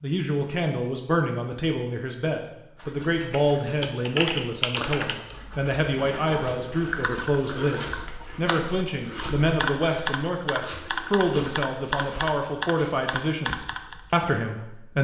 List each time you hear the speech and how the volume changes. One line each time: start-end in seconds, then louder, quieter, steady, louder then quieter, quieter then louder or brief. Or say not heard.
0.0-15.0 steady.